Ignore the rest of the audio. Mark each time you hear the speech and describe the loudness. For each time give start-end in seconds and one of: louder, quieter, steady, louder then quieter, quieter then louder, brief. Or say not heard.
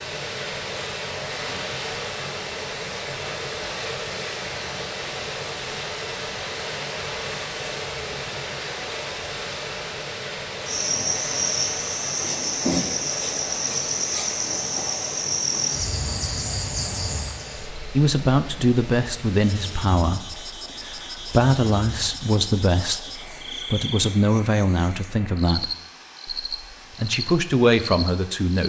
17.9-28.6 steady.